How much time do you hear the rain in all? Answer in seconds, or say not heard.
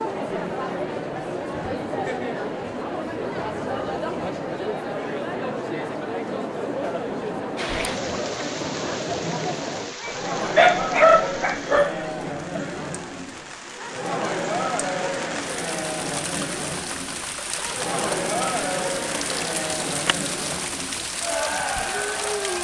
15 s.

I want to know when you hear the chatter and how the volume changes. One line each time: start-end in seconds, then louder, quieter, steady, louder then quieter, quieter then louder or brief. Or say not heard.
0.0-22.5 steady.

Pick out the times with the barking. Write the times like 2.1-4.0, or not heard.
10.1-12.6.